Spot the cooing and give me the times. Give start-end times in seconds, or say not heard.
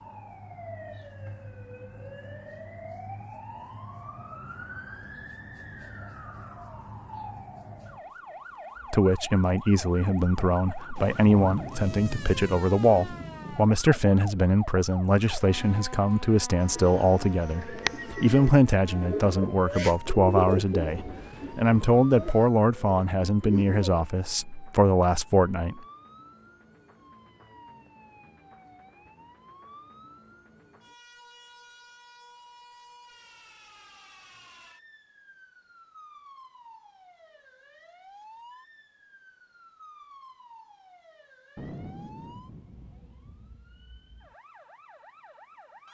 16.6-23.9.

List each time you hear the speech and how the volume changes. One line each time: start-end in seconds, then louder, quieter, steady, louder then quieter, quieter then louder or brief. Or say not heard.
8.9-25.8 steady.